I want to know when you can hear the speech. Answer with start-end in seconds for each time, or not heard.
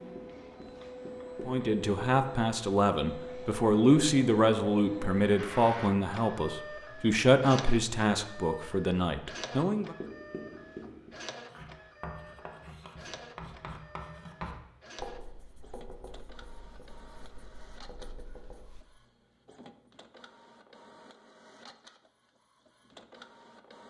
1.4-9.9.